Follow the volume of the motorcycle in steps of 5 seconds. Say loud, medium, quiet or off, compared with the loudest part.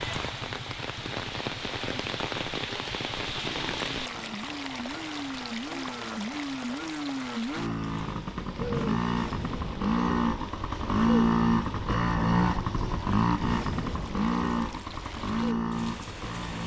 quiet, medium, loud, medium.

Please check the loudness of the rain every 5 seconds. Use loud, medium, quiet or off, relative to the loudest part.
loud, medium, quiet, medium.